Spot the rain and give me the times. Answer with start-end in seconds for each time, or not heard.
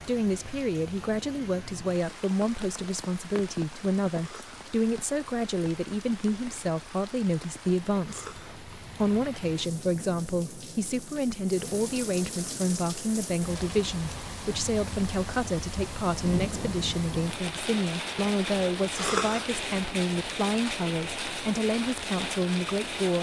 0.0-23.1.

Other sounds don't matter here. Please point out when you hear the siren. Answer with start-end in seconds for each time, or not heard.
not heard.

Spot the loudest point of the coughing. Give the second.
19 s.